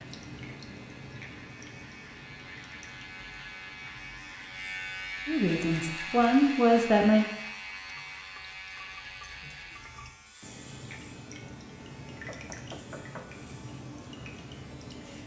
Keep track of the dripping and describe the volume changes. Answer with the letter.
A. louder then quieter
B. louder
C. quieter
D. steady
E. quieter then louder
E.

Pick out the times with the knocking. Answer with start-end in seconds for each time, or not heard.
12.1-13.3.